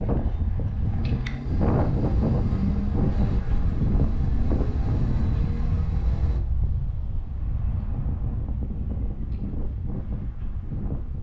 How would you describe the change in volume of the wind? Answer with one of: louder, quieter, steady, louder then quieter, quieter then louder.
quieter.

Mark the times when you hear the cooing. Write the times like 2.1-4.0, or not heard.
not heard.